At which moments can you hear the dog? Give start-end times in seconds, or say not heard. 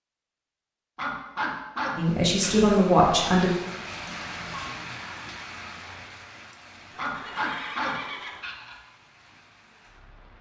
0.9-2.7, 7.0-8.8.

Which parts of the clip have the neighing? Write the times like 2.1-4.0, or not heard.
7.0-8.4.